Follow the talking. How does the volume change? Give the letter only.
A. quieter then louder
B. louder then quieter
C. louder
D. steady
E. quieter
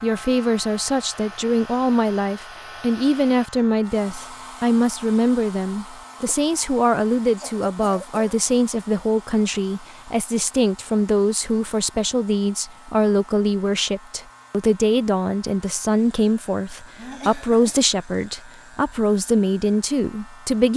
D.